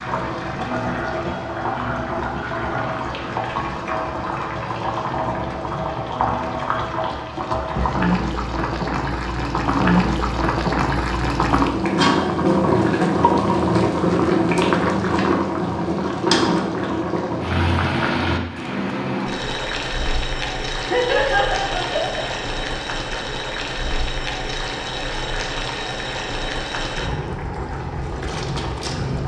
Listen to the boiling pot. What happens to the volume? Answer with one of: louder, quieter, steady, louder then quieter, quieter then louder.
louder then quieter.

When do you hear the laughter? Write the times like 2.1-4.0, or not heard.
20.8-22.3.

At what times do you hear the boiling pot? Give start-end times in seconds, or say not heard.
0.0-29.2.